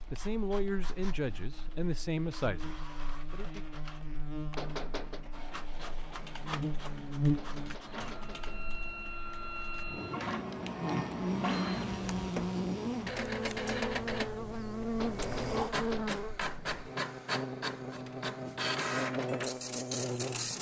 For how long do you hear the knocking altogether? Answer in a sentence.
You can hear the knocking for 3 seconds altogether.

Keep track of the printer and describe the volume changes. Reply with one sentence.
The loudness of the printer goes up.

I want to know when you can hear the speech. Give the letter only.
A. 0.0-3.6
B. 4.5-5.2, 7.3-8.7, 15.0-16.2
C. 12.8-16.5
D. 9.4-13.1
A.